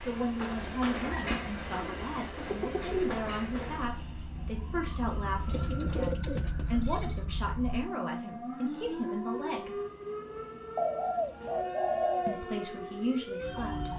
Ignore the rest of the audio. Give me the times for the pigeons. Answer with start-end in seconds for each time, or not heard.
0.5-3.1, 5.5-7.3, 10.8-12.3.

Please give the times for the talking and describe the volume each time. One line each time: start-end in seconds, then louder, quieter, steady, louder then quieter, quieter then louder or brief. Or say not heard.
0.0-9.8 steady
12.2-13.9 brief.